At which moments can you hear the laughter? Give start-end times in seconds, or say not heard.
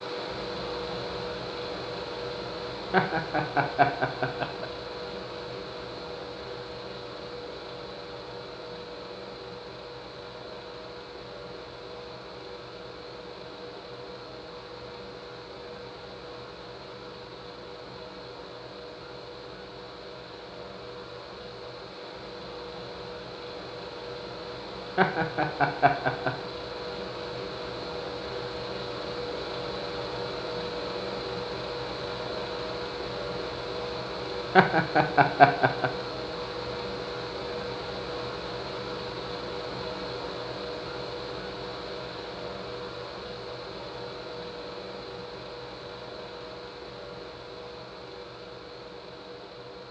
2.9-4.7, 24.9-26.3, 34.5-35.9.